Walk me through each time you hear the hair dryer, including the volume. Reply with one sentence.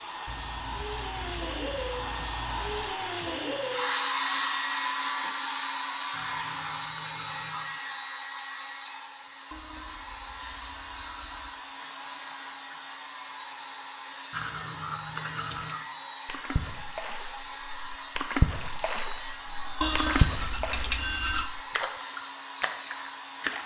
The hair dryer can be heard from 0.0 to 23.6 s, getting quieter.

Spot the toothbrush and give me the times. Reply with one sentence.
You can hear the toothbrush from 0.2 to 3.0 s, from 6.1 to 7.8 s, from 9.5 to 11.5 s, from 14.3 to 15.8 s and from 19.8 to 21.5 s.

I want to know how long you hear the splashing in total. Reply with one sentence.
The splashing can be heard for 8 seconds in total.